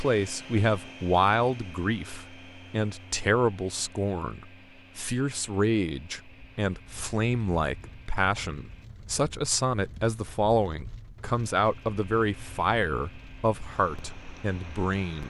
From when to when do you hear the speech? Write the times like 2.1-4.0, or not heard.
0.0-15.2.